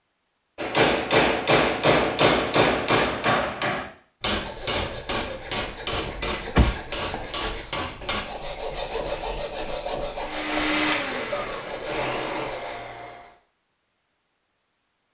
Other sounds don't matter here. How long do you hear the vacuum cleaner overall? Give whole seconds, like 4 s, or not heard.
3 s.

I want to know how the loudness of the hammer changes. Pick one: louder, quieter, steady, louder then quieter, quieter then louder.
quieter.